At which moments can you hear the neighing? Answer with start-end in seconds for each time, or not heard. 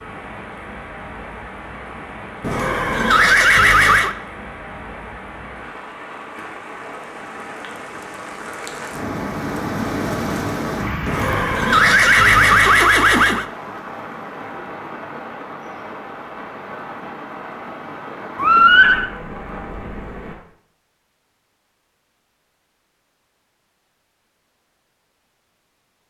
2.4-4.2, 11.1-13.4, 18.4-19.1.